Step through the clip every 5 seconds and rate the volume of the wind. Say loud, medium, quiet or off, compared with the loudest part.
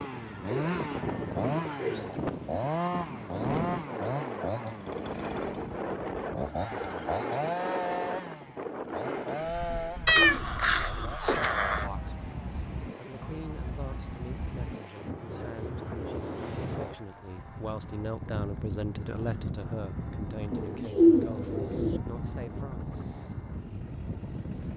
loud, loud, medium, loud, loud.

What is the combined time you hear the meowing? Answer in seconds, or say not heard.
2 s.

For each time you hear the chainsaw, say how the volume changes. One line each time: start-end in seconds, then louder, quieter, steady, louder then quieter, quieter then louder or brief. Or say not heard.
0.0-24.7 quieter.